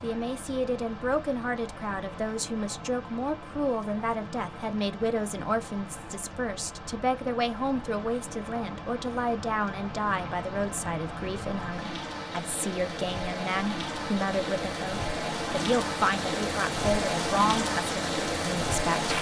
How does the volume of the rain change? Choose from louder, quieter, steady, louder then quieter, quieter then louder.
louder.